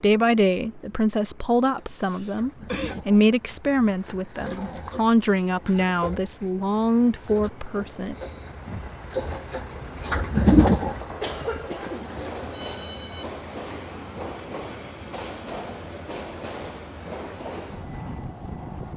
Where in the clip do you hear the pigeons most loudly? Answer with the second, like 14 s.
11 s.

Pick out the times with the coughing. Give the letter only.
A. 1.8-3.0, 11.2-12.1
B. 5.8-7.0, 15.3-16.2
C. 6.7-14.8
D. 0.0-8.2
A.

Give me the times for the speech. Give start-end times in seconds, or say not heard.
0.0-8.2.